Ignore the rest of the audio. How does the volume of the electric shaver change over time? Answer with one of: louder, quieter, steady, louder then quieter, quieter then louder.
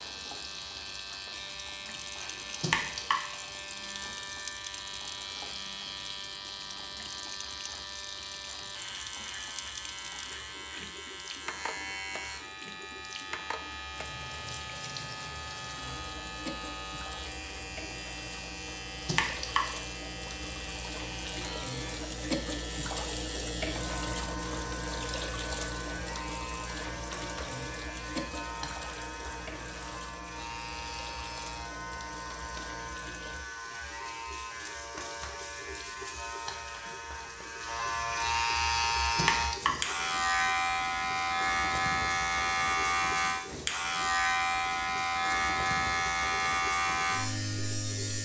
louder.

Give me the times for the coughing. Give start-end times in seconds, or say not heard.
2.6-3.1, 19.1-19.6, 39.1-39.8.